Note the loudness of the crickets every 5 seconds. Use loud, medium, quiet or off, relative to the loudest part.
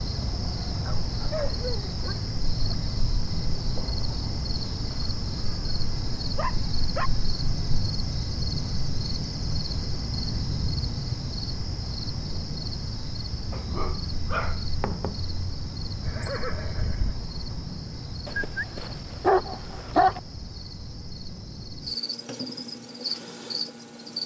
loud, loud, loud, medium, loud.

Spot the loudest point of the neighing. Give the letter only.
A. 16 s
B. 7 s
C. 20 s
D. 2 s
A.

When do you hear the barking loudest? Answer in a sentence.
The volume of the barking peaks at 20 seconds.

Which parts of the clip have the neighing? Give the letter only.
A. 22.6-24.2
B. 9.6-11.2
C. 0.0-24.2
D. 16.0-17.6
D.